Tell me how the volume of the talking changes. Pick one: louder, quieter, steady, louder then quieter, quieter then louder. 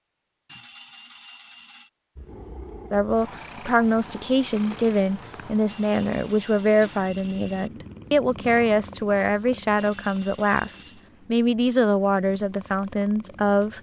steady.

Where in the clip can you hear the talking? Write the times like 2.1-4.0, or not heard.
2.9-13.7.